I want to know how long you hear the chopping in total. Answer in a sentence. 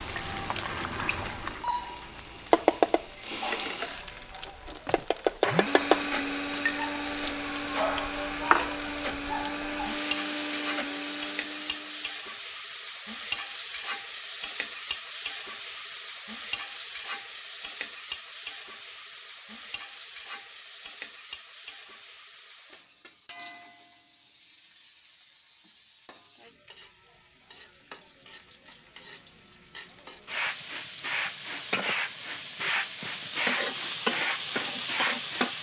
You can't hear the chopping here.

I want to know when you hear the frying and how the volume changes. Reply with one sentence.
You can hear the frying from 0.0 to 35.5 s, getting quieter then louder.